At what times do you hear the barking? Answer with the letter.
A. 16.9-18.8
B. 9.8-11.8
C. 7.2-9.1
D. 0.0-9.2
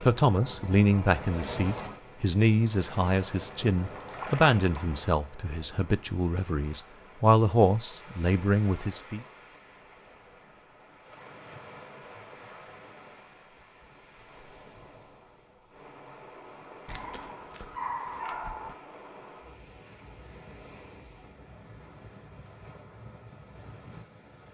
A.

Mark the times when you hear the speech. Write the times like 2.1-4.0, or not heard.
0.0-9.2.